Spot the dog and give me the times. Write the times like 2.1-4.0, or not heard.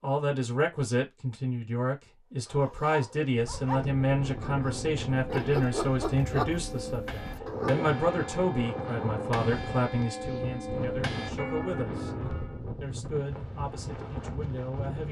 2.5-7.8.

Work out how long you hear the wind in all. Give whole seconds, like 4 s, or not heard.
12 s.